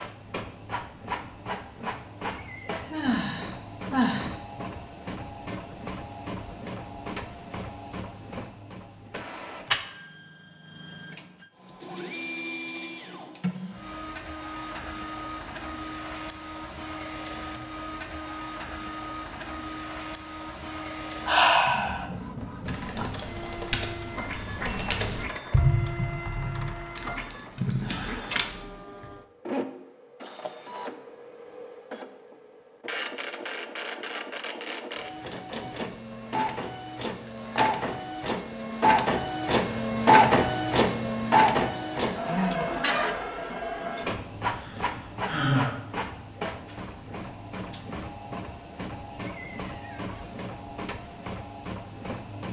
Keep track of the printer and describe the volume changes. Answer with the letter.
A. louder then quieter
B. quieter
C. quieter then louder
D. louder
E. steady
A.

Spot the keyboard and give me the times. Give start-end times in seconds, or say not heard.
22.6-29.1.